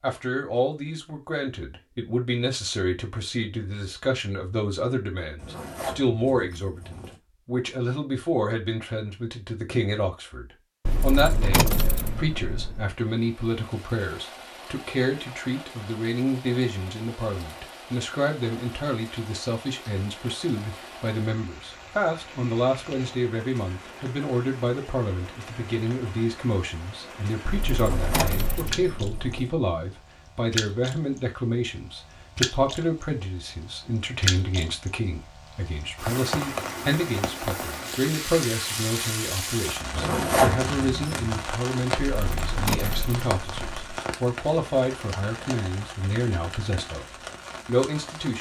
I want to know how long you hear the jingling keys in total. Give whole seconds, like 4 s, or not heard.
6 s.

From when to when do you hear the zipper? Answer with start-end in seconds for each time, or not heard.
5.3-7.2, 27.7-29.5, 39.9-41.3.